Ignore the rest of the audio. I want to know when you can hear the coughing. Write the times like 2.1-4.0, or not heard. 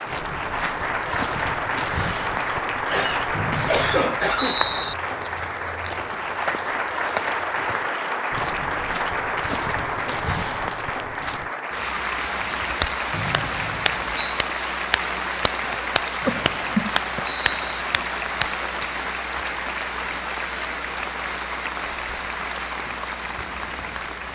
2.9-4.6, 15.6-17.4.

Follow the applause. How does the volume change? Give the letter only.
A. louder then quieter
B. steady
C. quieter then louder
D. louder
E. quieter
B.